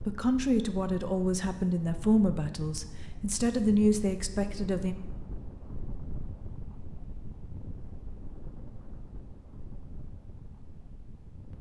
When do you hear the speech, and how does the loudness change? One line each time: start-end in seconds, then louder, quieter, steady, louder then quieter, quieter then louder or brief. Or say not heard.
0.1-5.0 steady.